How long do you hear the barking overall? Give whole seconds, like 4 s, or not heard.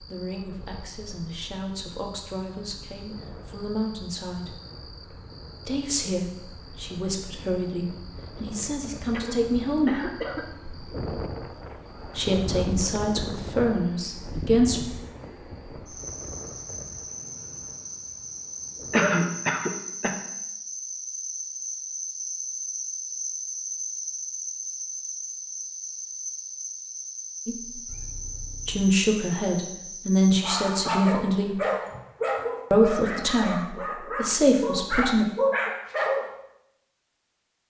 6 s.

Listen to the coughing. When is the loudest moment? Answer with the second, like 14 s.
19 s.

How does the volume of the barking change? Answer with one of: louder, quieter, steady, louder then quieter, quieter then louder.
quieter then louder.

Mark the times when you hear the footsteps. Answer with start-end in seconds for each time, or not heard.
not heard.